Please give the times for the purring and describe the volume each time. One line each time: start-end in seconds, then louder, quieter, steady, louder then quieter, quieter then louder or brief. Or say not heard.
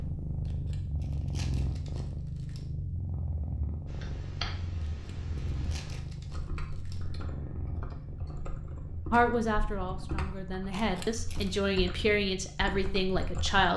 0.0-13.7 quieter.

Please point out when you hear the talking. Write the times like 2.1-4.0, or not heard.
9.1-13.7.